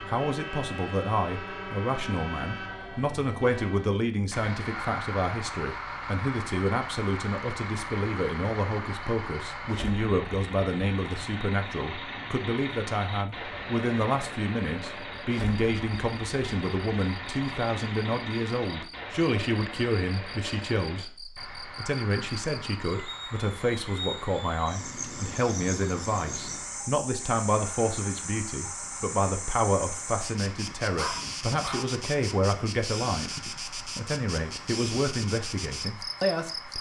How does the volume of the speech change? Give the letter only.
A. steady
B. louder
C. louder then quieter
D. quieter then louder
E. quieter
A.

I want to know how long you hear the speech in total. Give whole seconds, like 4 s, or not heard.
37 s.